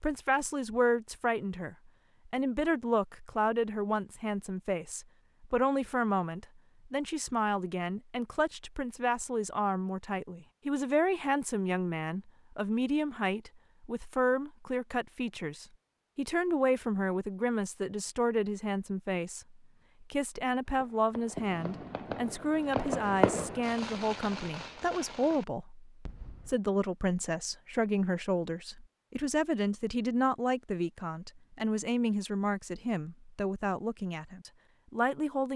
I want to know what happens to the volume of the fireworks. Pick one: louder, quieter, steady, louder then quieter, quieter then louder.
louder then quieter.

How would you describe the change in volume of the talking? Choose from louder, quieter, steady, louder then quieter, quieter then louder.
steady.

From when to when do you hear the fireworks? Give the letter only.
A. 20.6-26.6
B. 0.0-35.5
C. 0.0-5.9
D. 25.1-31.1
A.